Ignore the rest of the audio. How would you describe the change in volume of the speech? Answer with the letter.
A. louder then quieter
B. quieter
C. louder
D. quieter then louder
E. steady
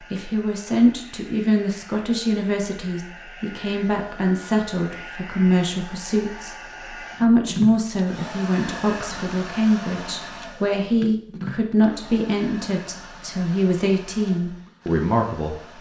E.